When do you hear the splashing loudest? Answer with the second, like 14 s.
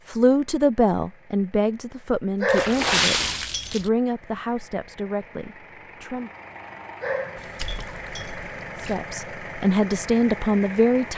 3 s.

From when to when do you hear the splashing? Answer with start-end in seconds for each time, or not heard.
2.5-3.9, 7.3-9.0.